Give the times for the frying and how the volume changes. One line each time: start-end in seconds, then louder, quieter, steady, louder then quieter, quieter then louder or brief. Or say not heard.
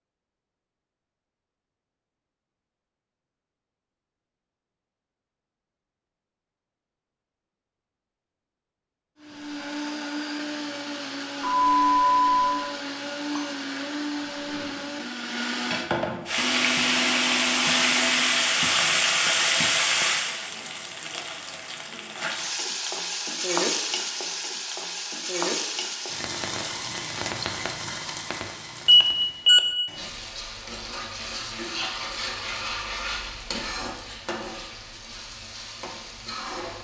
16.2-36.8 quieter.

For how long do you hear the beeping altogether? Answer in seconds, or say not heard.
2 s.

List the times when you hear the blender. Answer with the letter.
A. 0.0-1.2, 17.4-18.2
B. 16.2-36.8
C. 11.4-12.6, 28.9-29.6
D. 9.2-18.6
D.